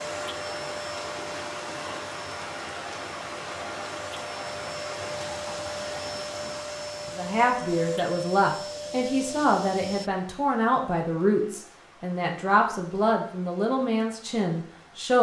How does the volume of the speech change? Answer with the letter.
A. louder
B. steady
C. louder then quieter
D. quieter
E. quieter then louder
B.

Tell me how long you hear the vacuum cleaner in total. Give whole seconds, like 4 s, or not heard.
10 s.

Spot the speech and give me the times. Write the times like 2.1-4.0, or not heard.
7.2-15.1.